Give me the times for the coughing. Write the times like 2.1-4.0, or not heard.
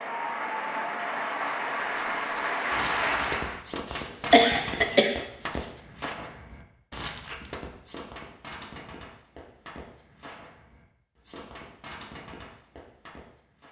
3.9-5.7.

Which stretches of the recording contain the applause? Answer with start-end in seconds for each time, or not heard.
0.0-3.6.